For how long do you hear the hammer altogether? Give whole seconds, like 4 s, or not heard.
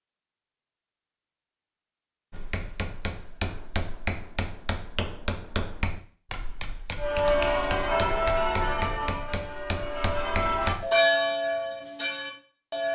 9 s.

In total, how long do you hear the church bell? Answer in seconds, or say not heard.
6 s.